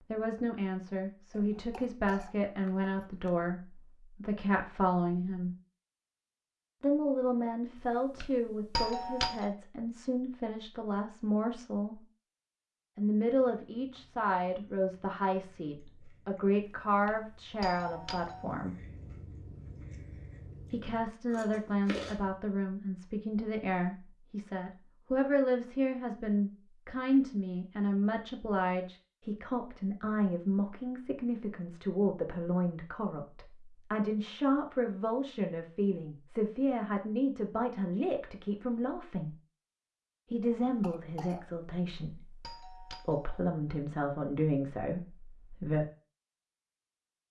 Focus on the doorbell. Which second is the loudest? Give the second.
9 s.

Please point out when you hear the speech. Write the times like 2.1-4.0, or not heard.
0.1-5.5, 6.8-12.0, 12.9-18.8, 20.7-39.4, 40.3-45.9.